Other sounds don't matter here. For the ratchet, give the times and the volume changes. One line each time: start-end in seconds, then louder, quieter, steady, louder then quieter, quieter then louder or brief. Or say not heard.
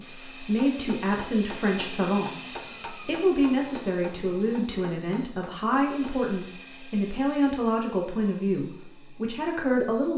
not heard.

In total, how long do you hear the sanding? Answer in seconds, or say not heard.
not heard.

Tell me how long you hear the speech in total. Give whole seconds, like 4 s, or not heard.
10 s.